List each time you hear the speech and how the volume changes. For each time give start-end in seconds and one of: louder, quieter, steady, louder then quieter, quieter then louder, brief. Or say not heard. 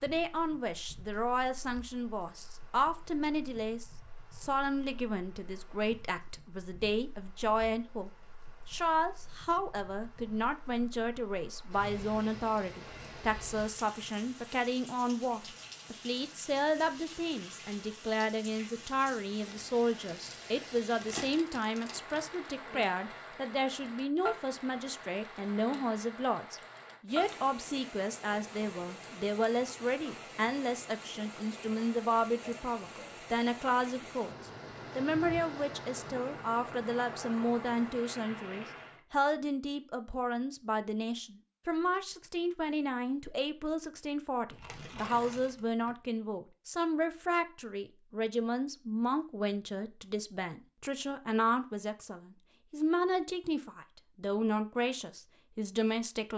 0.0-56.3 steady.